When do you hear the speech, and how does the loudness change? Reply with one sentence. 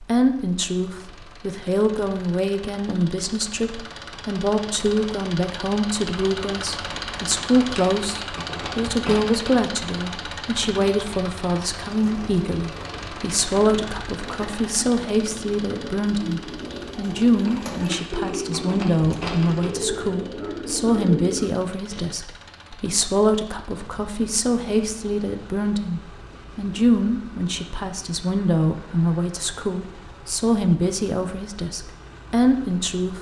You can hear the speech from 0.0 to 33.1 s, at a steady volume.